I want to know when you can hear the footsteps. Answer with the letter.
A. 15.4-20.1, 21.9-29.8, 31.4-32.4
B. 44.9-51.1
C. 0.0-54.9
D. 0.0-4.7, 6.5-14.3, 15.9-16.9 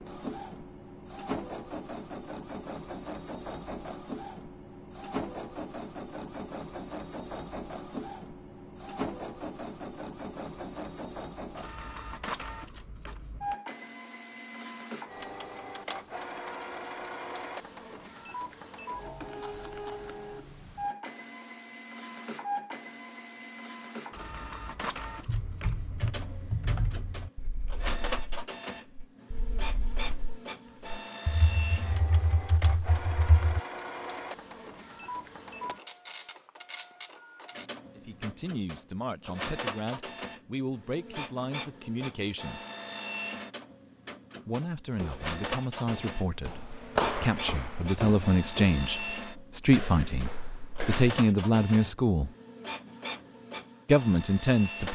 B.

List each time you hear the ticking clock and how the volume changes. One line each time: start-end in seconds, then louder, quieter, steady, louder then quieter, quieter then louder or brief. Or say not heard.
not heard.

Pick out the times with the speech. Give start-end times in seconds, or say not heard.
38.0-42.6, 44.5-52.3, 53.9-54.9.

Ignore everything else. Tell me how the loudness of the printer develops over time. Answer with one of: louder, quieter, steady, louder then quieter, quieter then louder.
steady.